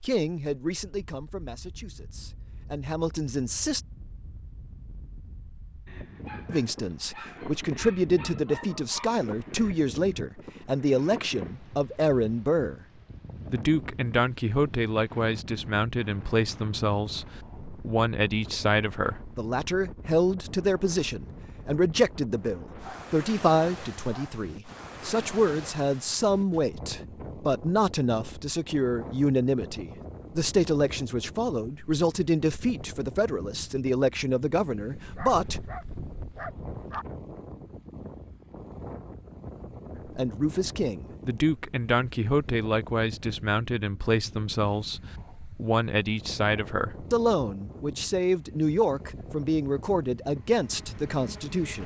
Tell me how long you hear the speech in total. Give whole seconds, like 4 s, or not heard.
44 s.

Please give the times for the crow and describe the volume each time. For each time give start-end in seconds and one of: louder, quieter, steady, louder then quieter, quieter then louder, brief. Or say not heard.
not heard.